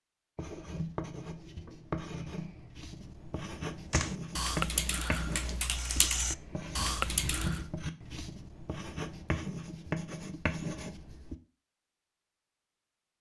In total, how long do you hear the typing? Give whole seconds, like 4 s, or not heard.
4 s.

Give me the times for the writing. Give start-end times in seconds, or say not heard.
0.3-11.3.